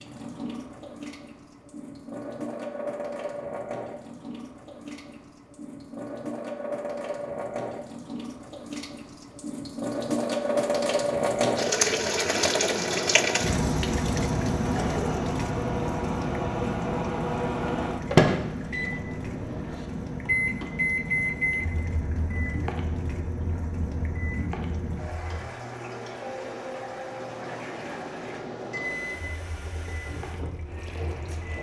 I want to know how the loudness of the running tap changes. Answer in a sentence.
The volume of the running tap goes up, then down.